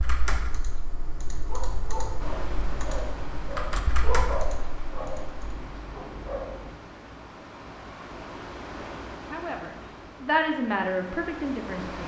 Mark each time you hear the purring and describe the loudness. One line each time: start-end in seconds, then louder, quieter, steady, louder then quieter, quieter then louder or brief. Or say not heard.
not heard.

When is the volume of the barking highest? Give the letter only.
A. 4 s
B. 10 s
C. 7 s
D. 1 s
A.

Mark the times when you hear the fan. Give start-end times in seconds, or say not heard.
2.2-12.0.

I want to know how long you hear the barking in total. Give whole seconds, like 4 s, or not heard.
5 s.